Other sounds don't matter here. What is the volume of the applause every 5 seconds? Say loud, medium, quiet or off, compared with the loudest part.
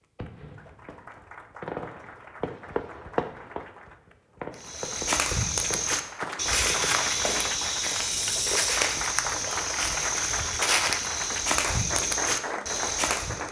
quiet, loud, loud.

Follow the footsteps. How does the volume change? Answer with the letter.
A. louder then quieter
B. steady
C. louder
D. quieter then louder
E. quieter
B.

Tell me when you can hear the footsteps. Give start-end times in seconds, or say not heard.
4.5-13.4.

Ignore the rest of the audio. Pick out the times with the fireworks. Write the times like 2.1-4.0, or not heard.
0.1-7.5.